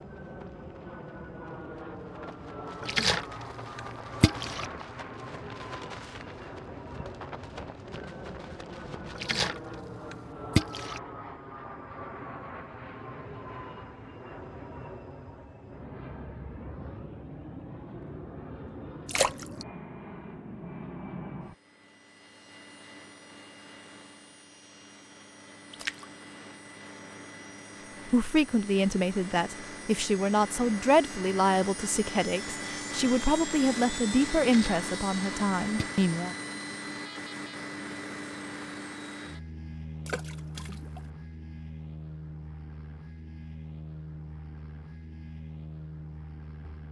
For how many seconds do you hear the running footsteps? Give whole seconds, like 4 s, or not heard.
9 s.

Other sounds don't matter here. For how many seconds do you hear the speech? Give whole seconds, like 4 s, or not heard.
8 s.